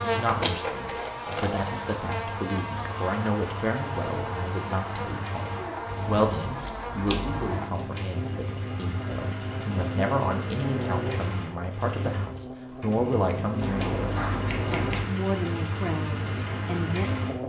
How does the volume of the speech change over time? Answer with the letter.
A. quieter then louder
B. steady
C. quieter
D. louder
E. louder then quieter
B.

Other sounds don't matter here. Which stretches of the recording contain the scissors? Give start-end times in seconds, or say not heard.
0.2-1.6, 5.9-7.5, 13.6-15.1.